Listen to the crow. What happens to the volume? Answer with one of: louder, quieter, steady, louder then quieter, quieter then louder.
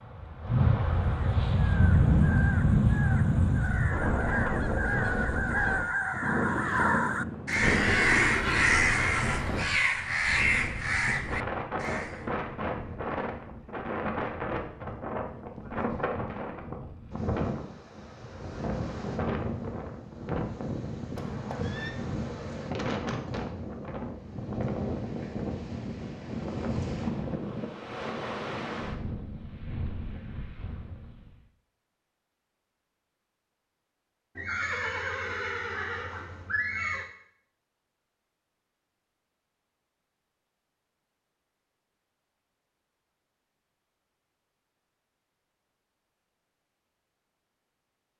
louder.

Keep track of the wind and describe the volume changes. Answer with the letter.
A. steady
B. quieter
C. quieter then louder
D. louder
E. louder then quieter
B.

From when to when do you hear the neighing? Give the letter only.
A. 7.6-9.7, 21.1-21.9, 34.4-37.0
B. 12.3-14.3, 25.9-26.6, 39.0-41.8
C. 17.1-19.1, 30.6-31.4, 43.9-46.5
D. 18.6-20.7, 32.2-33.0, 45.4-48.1
A.